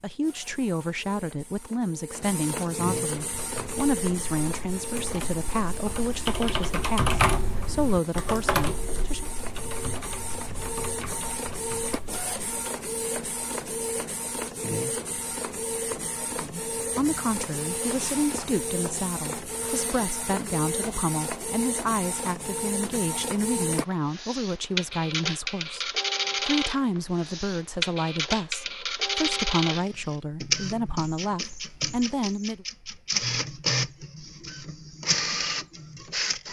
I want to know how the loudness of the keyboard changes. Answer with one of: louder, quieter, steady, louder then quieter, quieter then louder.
louder then quieter.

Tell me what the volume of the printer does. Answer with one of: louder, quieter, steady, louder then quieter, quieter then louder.
louder.